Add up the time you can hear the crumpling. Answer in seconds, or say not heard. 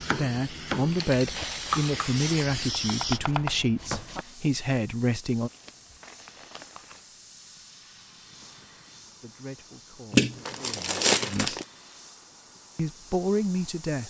5 s.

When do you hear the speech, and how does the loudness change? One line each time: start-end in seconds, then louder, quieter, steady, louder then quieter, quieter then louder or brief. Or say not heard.
0.0-5.5 steady
9.2-11.6 brief
12.8-14.0 brief.